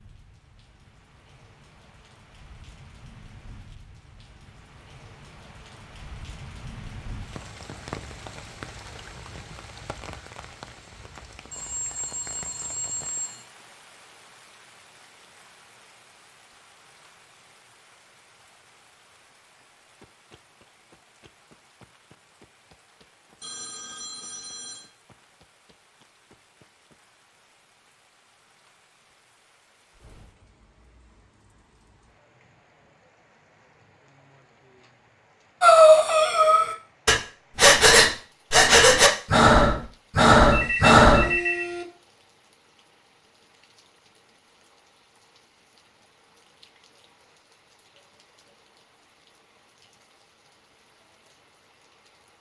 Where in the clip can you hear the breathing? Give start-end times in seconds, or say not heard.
35.6-41.4.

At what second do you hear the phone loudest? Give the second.
41 s.